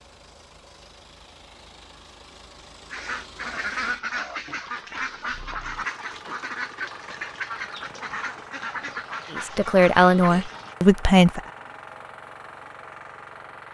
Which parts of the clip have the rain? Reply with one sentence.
You can't hear the rain here.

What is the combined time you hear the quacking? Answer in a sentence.
You can hear the quacking for 8 seconds altogether.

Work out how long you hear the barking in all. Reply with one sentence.
The barking can't be heard in this clip.